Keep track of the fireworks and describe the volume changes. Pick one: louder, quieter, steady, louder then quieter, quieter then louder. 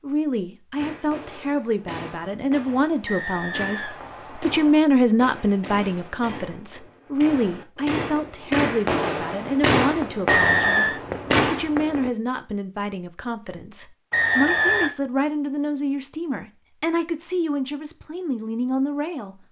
louder.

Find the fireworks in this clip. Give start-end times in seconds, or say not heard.
0.8-12.1.